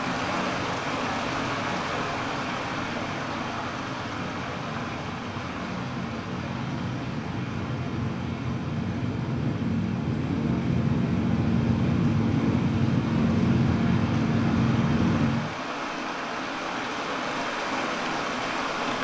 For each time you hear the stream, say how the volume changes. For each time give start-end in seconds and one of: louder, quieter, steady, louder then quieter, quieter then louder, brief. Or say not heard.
0.0-18.9 quieter then louder.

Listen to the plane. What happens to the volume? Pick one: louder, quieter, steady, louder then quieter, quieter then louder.
louder.